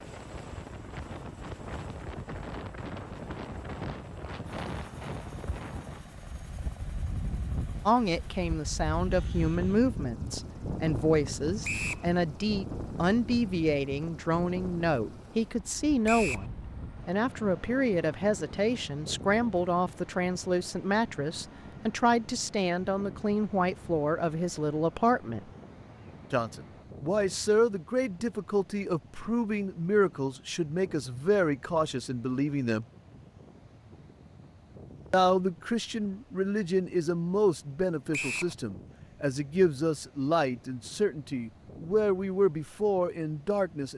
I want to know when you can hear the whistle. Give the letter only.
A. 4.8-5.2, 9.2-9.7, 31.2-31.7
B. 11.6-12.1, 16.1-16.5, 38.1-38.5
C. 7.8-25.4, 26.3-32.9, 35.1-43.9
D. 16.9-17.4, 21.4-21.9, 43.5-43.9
B.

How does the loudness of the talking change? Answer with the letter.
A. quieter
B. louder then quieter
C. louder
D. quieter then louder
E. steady
E.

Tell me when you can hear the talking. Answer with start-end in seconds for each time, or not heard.
7.8-25.4, 26.3-32.9, 35.1-43.9.